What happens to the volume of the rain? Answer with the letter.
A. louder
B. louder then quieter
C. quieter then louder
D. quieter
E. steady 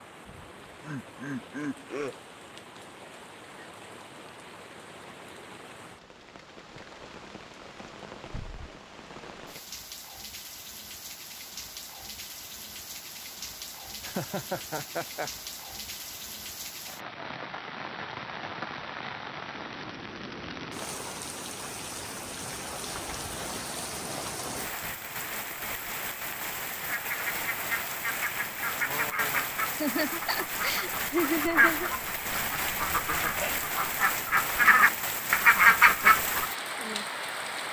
A.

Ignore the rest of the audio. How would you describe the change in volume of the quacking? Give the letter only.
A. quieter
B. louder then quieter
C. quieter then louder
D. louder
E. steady
D.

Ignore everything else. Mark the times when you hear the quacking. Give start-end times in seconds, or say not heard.
26.9-36.5.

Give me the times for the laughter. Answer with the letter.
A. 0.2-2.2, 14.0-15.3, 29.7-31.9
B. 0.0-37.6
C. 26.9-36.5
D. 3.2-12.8
A.